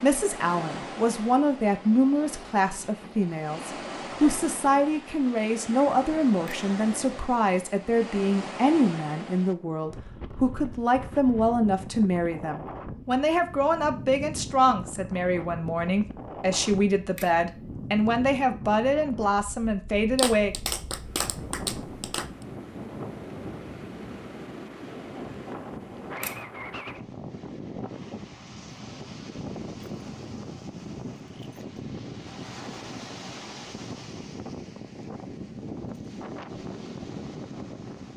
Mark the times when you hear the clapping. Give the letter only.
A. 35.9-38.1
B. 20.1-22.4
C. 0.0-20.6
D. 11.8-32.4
B.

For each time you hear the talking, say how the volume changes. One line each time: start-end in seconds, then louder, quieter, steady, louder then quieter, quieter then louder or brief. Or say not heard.
0.0-20.6 steady.